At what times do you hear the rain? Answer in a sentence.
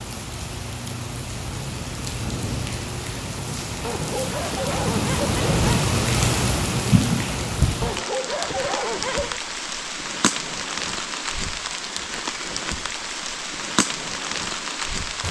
The rain can be heard from 0.0 to 15.2 s.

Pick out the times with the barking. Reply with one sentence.
The barking can be heard from 3.8 to 5.8 s and from 7.8 to 9.4 s.